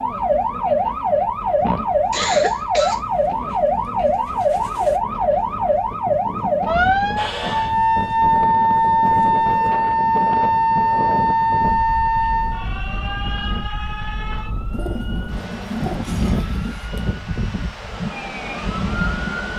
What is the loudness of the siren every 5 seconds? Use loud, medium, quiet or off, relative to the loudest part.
loud, loud, loud, quiet.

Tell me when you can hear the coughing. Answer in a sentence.
You can hear the coughing from 1.6 to 3.0 s, from 6.7 to 7.8 s and from 16.0 to 16.9 s.